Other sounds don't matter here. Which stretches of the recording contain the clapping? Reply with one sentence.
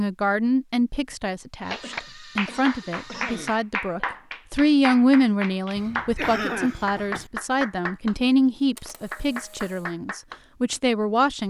The clapping can be heard from 1.7 to 8.2 s and from 8.8 to 10.4 s.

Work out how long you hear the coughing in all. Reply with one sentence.
The coughing can be heard for 3 seconds in total.